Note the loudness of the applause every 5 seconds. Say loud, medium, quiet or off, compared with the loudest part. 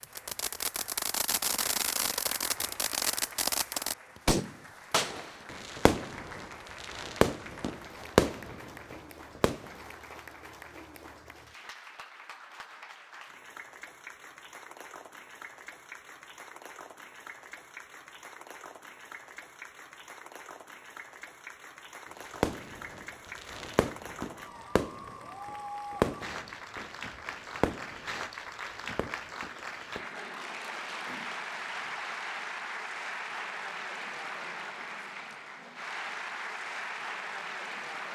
medium, medium, medium, medium, medium, loud, loud, loud.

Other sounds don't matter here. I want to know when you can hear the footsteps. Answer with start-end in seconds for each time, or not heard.
not heard.